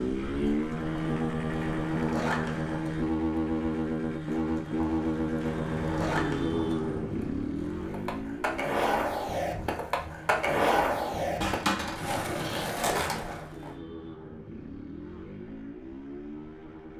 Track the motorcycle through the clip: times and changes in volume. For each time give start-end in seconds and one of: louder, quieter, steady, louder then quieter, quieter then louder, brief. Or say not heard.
0.0-16.9 quieter.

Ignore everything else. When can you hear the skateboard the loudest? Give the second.
11 s.